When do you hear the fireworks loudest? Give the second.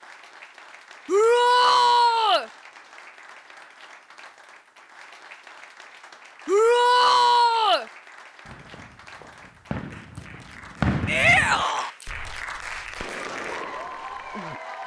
11 s.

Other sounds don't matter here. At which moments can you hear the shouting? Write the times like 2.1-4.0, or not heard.
1.1-2.5, 6.5-7.8, 11.1-11.9.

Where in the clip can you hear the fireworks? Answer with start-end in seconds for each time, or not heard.
8.4-14.6.